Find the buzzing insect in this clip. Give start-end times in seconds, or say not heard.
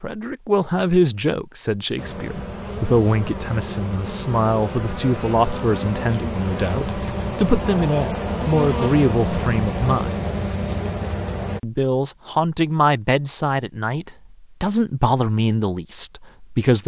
1.9-11.6.